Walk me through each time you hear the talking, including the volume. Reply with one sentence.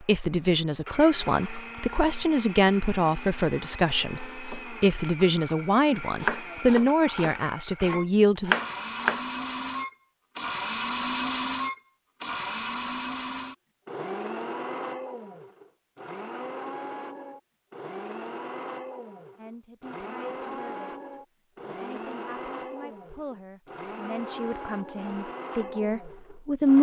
You can hear the talking from 0.0 to 8.6 s, at a steady volume; and from 19.4 to 26.7 s, getting louder.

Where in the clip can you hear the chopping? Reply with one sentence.
You can hear the chopping from 4.2 to 9.2 s.